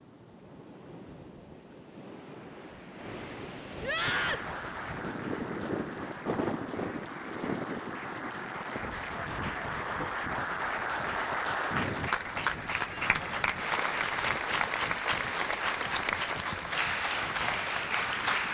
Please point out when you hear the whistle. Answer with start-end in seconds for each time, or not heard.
not heard.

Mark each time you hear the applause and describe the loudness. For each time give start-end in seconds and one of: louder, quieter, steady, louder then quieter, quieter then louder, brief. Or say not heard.
4.0-18.4 louder.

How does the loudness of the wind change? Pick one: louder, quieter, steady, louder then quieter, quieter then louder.
louder then quieter.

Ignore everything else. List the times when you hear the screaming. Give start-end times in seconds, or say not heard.
3.8-4.5.